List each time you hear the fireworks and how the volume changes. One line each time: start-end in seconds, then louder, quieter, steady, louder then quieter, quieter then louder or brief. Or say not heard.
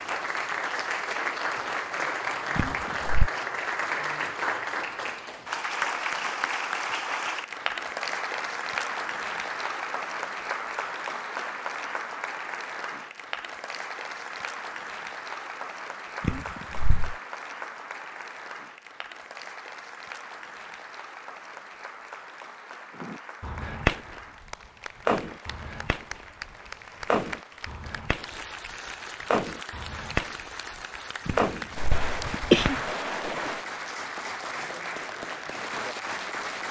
22.9-33.6 quieter then louder.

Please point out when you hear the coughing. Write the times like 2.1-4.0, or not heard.
2.5-3.3, 16.2-17.1, 31.2-32.8.